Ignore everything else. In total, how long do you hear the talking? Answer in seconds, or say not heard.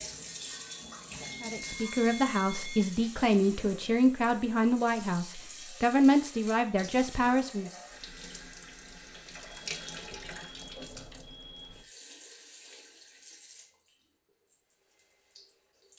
6 s.